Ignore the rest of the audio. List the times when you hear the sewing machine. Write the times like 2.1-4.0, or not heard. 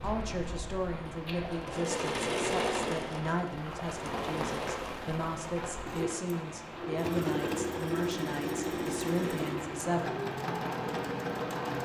0.0-11.8.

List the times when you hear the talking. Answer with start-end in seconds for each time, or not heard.
0.0-10.1.